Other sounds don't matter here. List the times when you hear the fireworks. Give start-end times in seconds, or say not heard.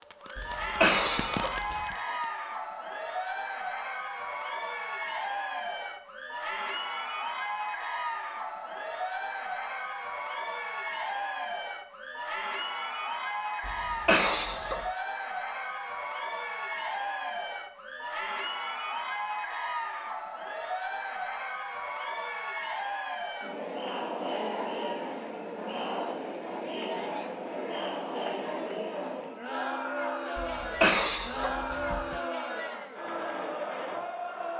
0.0-2.3.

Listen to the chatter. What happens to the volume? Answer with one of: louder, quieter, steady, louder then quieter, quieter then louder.
steady.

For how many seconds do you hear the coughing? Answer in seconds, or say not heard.
5 s.